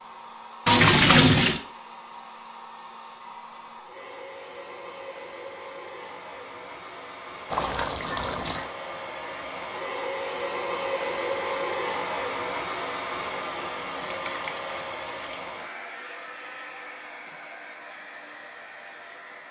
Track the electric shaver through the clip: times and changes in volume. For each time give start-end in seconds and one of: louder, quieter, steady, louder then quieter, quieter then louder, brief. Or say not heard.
not heard.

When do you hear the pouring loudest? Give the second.
1 s.